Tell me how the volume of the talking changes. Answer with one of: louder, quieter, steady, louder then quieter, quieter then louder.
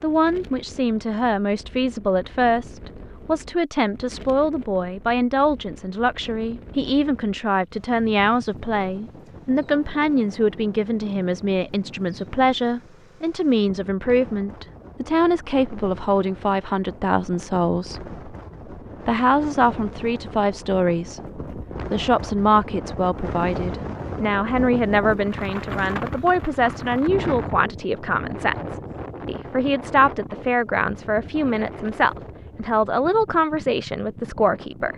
steady.